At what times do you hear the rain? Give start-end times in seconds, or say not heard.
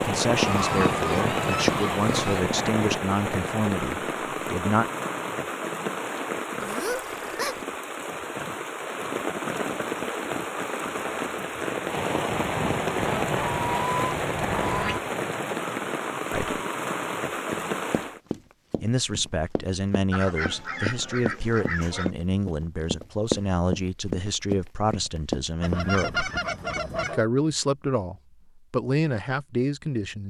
0.0-18.2.